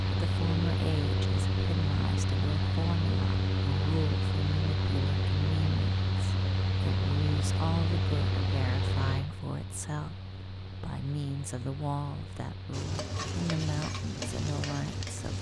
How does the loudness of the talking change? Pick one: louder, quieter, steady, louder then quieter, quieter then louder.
steady.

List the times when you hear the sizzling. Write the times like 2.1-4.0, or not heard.
12.7-15.3.